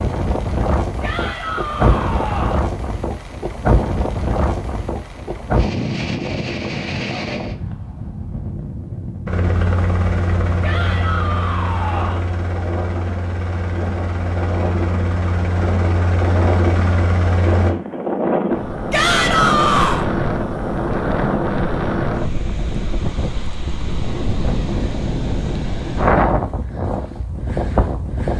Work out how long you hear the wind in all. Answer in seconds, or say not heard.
28 s.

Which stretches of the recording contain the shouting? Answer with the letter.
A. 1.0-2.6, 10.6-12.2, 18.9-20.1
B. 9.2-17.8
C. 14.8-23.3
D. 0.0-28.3
A.